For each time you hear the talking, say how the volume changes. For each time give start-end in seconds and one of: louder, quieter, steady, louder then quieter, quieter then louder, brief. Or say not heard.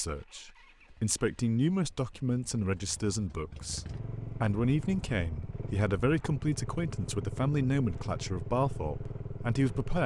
0.0-10.0 steady.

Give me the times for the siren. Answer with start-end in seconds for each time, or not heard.
not heard.